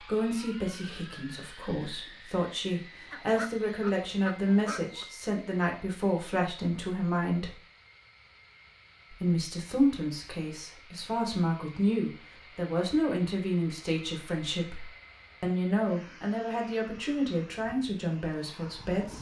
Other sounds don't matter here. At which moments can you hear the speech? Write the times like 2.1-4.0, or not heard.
0.0-7.5, 9.1-19.1.